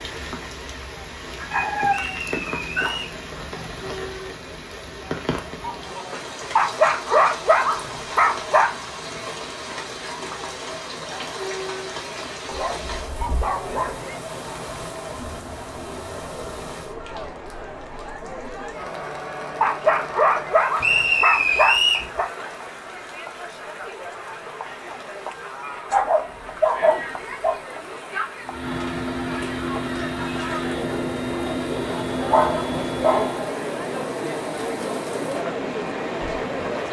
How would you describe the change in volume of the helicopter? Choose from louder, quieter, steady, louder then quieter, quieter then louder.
steady.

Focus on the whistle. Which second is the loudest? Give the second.
22 s.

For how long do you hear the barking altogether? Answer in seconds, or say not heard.
11 s.